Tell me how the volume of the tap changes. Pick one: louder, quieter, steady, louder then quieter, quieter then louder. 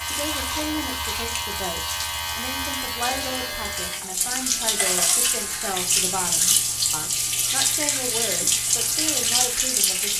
louder.